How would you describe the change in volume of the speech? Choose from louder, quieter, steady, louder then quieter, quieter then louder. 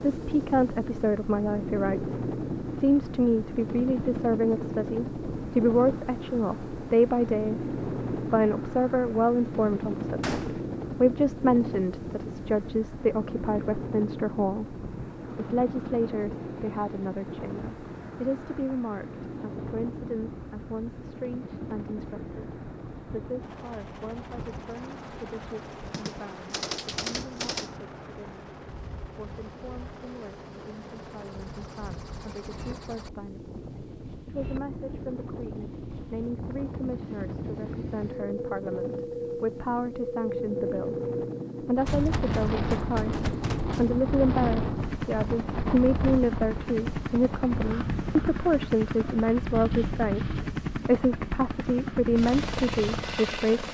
quieter then louder.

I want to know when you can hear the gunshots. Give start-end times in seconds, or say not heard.
10.2-10.7, 25.9-27.8, 41.9-44.1.